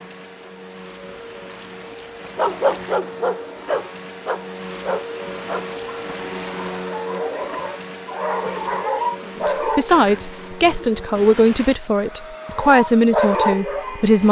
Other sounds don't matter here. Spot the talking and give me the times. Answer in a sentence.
The talking can be heard from 9.3 to 14.2 s.